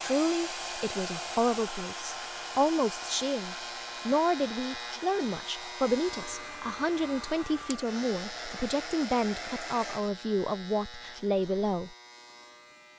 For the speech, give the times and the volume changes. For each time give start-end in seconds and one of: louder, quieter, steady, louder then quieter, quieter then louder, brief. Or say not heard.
0.0-11.9 steady.